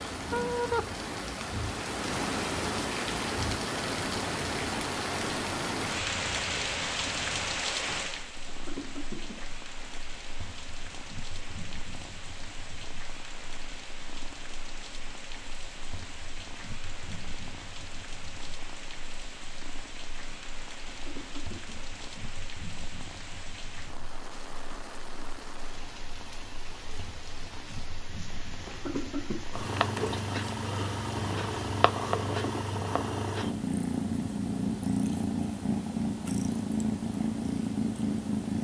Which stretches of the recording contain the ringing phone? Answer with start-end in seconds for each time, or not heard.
not heard.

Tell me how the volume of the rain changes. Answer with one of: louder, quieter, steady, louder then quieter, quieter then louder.
quieter.